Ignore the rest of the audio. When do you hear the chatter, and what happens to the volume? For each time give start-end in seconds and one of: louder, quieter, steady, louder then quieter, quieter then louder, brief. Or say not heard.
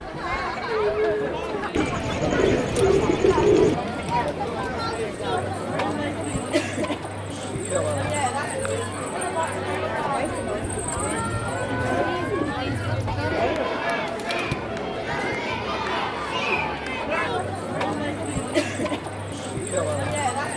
0.0-20.5 steady.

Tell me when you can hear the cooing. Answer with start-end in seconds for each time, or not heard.
1.8-3.8, 10.6-13.6.